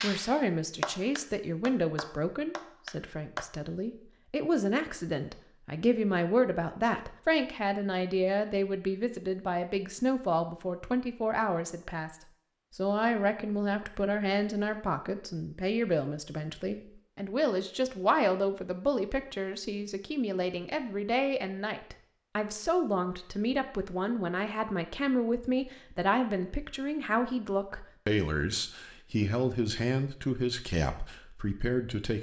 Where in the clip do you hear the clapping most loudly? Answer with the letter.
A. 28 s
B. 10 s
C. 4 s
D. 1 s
D.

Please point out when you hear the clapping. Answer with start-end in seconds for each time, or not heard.
0.0-3.5.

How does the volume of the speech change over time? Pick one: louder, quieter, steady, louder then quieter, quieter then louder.
steady.